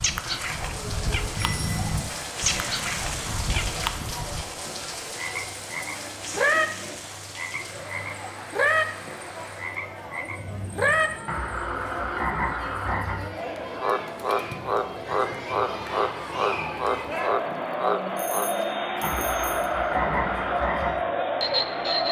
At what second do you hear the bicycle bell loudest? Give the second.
2 s.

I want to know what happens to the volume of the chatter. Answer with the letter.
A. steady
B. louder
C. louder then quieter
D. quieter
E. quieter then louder
B.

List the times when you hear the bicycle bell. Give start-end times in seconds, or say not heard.
1.4-2.1, 18.1-19.7.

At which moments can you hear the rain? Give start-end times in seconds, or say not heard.
0.0-11.2.